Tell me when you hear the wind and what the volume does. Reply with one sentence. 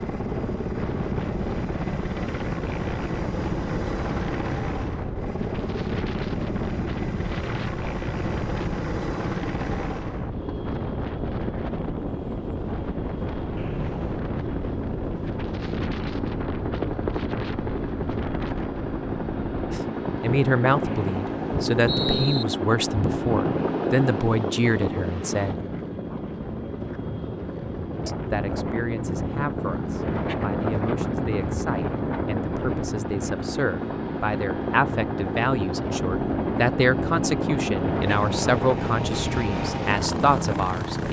You can hear the wind from 0.0 to 41.0 s, at a steady volume.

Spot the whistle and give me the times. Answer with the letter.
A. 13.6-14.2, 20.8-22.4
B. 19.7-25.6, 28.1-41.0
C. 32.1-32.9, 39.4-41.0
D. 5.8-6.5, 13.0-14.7
A.